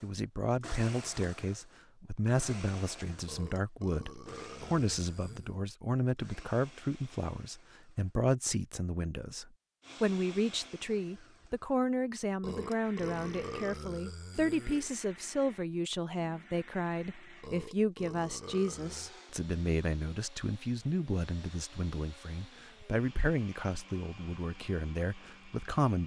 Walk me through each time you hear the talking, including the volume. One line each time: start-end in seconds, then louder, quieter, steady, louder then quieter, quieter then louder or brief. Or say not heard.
0.0-26.0 steady.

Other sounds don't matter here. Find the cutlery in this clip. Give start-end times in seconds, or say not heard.
not heard.